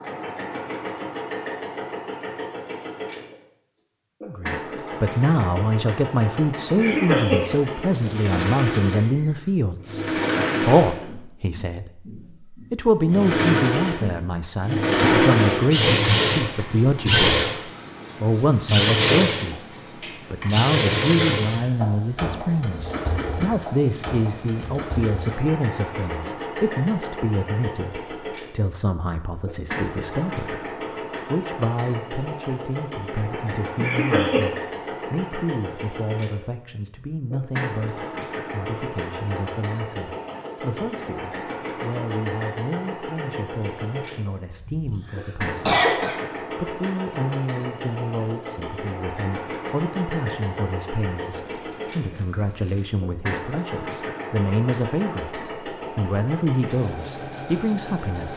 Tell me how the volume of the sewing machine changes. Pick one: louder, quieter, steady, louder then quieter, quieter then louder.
louder then quieter.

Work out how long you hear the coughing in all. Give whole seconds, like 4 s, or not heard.
3 s.